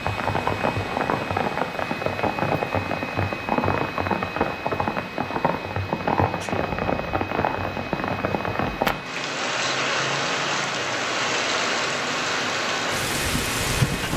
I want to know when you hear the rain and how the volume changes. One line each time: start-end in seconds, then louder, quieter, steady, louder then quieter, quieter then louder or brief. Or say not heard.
0.0-14.1 steady.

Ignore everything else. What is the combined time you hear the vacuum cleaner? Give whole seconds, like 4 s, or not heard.
14 s.